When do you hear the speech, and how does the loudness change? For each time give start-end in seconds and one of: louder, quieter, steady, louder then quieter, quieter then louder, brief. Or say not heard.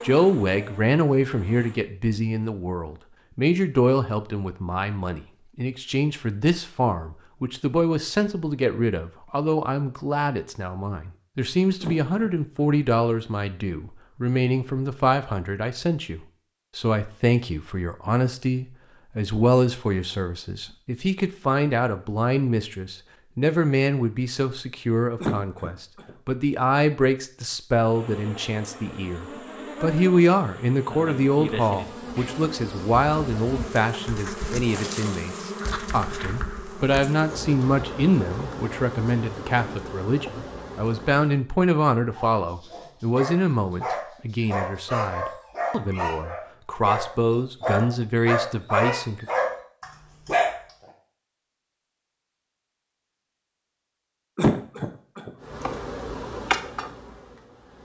0.0-49.2 steady.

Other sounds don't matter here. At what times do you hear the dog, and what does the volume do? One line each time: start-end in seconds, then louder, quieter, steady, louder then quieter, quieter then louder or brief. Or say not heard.
42.0-50.5 louder.